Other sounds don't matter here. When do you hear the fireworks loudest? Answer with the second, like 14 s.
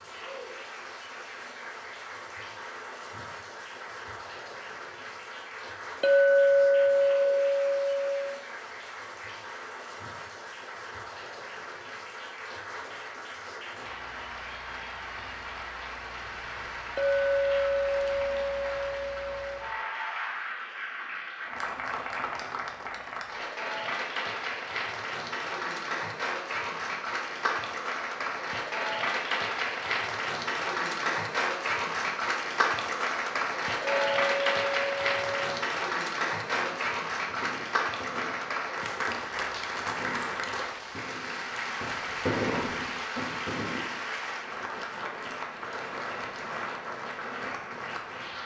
42 s.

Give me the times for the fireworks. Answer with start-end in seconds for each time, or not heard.
36.5-44.2.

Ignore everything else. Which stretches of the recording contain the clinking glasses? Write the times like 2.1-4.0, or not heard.
6.0-8.3, 16.9-19.6, 34.0-35.6.